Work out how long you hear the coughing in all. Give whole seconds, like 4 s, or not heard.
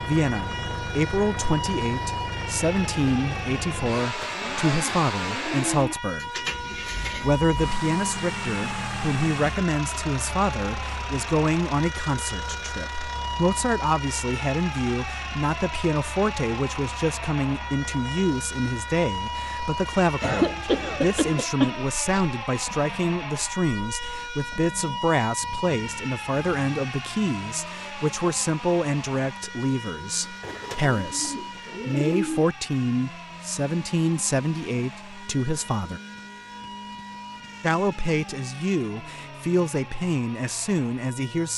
2 s.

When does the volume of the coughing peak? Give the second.
21 s.